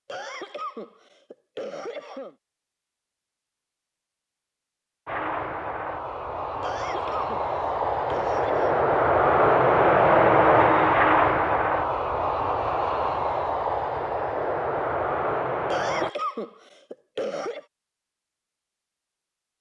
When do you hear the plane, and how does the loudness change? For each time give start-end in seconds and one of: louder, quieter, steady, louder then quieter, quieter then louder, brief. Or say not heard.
5.0-16.1 louder then quieter.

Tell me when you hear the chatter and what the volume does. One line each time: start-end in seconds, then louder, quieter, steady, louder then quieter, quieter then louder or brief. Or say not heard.
not heard.